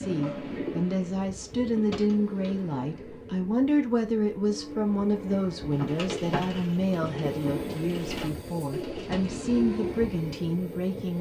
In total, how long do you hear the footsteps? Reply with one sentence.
The footsteps can't be heard in this clip.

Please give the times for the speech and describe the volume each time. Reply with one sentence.
The speech can be heard from 0.0 to 11.1 s, at a steady volume.